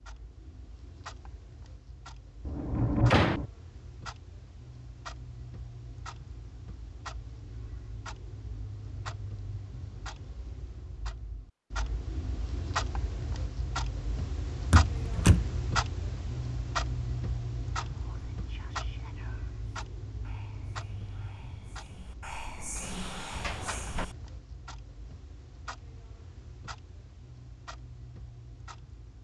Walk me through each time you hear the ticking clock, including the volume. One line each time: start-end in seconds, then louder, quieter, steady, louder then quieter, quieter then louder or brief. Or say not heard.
0.0-29.1 louder then quieter.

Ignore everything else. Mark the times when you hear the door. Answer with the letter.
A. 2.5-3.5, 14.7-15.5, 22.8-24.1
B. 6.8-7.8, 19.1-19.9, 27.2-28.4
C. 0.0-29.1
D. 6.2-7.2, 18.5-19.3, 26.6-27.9
A.